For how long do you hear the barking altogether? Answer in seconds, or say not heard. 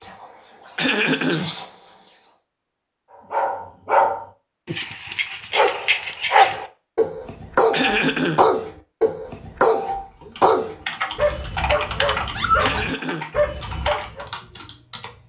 11 s.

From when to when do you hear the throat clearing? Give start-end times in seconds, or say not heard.
0.8-1.5, 7.7-8.4, 12.6-13.3.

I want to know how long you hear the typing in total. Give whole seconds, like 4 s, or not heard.
5 s.